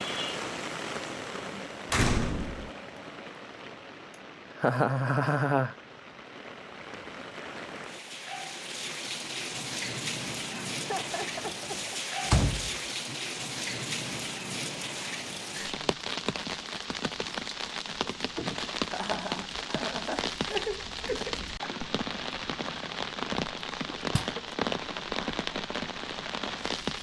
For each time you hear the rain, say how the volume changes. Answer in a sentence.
The rain can be heard from 0.0 to 26.9 s, getting louder.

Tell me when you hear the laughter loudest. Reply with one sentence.
The loudest moment of the laughter is at 5 seconds.